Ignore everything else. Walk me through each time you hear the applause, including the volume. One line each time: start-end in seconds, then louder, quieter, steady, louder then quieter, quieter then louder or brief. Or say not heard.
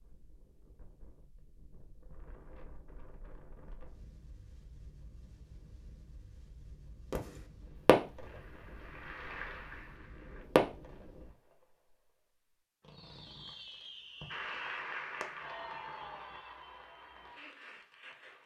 8.2-10.4 brief
14.3-18.4 quieter.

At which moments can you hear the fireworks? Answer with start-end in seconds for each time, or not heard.
7.1-8.4, 10.6-11.1, 12.8-15.6.